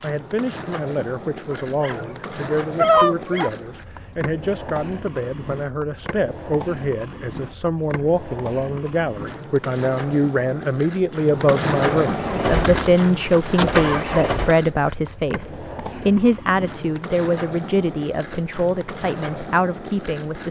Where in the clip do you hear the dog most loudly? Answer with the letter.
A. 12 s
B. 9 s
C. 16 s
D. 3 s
D.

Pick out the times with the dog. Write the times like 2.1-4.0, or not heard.
1.5-3.5.